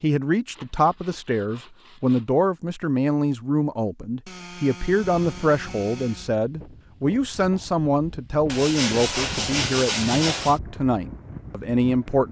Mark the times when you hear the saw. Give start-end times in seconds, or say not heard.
0.5-2.3, 4.2-6.3, 8.4-10.6.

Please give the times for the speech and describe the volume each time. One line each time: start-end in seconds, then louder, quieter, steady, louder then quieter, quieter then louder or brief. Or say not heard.
0.0-12.2 steady.